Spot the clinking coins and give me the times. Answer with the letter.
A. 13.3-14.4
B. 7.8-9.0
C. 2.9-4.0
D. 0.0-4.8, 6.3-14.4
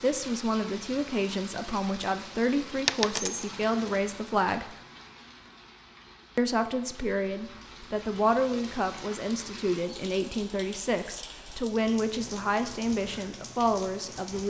C.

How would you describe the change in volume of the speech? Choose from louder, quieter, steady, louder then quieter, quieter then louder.
steady.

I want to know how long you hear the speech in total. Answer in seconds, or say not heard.
13 s.